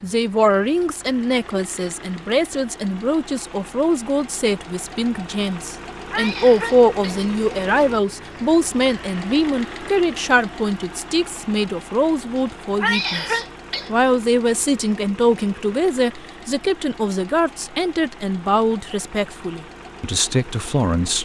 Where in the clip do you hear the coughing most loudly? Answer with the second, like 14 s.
13 s.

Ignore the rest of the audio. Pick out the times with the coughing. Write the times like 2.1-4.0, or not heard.
6.1-7.3, 12.8-13.9.